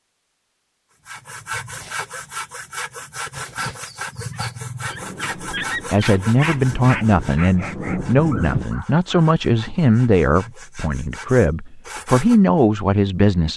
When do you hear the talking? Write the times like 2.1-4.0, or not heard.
5.9-13.5.